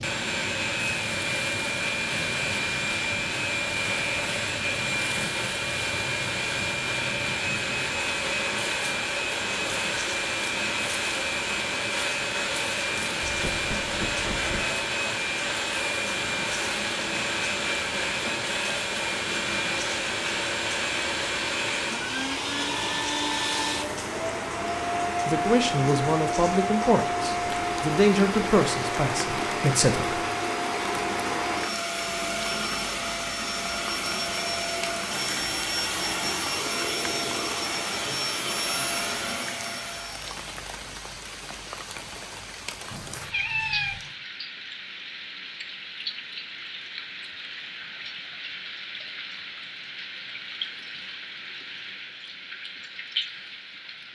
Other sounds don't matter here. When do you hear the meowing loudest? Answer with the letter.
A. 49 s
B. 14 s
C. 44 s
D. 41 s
C.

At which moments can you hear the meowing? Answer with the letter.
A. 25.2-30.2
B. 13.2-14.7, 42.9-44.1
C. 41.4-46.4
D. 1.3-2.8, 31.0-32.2
B.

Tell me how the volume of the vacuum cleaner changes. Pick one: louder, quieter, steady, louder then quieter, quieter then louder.
steady.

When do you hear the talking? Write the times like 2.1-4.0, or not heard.
25.2-30.2.